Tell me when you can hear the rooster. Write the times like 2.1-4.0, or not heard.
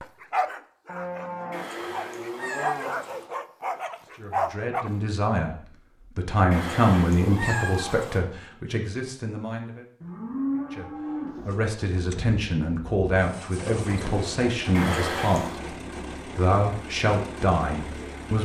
not heard.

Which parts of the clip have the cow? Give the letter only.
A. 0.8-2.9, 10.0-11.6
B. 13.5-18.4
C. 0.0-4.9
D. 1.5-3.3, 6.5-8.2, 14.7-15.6
A.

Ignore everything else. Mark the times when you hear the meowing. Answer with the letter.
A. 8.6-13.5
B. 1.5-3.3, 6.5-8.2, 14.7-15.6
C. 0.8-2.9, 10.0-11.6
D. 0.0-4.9
B.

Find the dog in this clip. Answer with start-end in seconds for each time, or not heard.
0.0-4.9.